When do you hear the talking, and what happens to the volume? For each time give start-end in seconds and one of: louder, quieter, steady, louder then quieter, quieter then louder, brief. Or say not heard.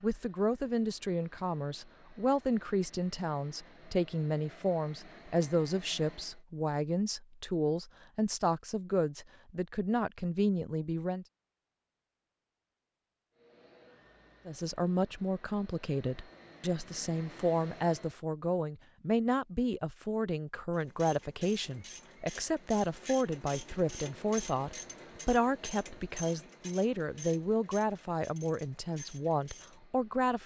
0.0-11.2 steady
14.4-30.4 steady.